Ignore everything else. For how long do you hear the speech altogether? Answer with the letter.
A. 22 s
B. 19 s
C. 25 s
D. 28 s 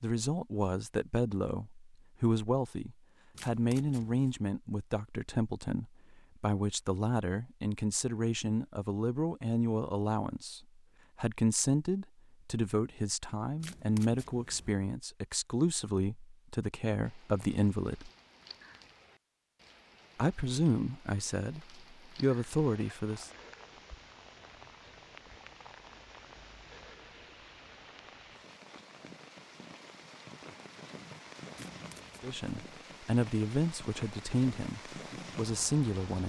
C.